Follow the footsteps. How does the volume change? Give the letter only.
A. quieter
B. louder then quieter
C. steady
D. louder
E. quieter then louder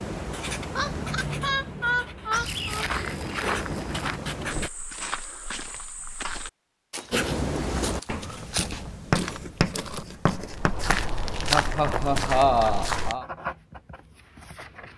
E.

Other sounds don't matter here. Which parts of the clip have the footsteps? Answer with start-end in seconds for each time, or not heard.
2.3-13.2.